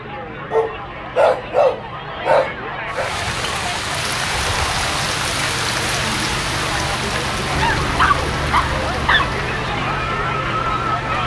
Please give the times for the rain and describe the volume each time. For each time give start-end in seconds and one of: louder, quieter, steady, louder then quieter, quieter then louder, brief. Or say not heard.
2.9-11.2 quieter.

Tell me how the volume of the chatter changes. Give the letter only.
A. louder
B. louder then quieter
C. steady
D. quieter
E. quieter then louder
A.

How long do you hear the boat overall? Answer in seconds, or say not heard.
11 s.